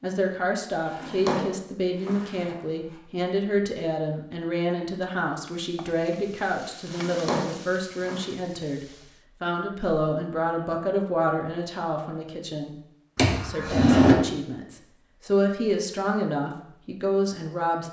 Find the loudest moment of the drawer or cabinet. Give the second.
14 s.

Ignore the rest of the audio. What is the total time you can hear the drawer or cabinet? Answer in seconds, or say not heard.
4 s.